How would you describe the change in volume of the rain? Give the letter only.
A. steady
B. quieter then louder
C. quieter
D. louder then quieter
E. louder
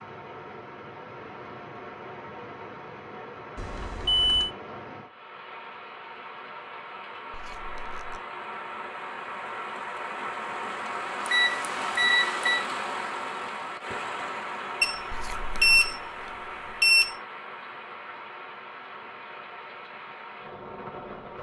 D.